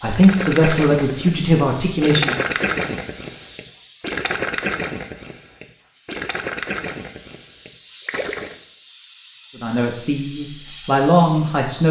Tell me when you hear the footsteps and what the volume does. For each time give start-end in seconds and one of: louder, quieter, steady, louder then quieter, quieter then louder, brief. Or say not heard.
not heard.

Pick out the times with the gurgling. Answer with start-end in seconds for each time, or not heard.
0.1-8.6.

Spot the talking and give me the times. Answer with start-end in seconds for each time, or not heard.
0.0-2.4, 9.6-11.8.